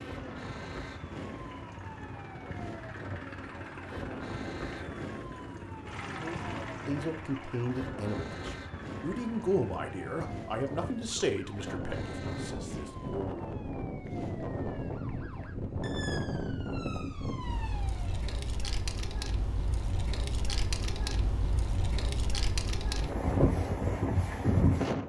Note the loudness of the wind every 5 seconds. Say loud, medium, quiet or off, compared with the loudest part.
quiet, quiet, medium, medium, loud.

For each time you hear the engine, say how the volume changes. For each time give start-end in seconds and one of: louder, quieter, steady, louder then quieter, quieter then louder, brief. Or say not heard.
0.0-10.2 louder then quieter.